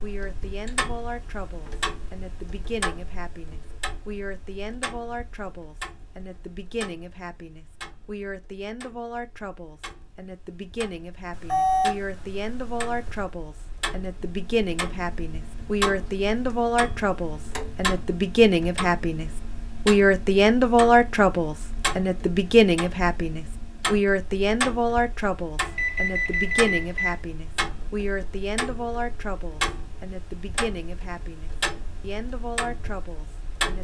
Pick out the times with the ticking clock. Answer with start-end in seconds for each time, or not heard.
0.0-33.7.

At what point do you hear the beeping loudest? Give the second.
12 s.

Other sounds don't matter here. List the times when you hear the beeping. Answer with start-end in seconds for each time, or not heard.
11.3-13.2, 25.6-27.1.